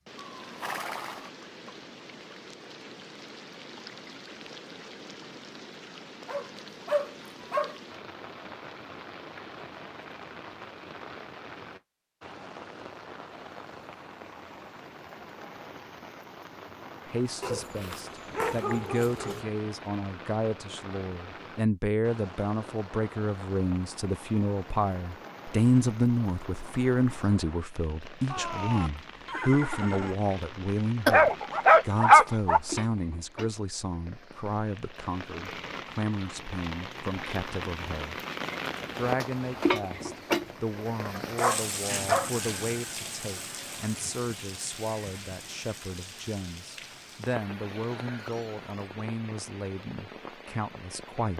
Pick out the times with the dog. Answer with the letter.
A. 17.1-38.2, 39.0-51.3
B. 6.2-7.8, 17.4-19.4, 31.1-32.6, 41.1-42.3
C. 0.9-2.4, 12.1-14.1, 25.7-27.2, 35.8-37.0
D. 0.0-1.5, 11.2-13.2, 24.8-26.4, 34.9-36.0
B.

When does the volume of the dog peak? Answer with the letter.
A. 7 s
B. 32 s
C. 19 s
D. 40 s
B.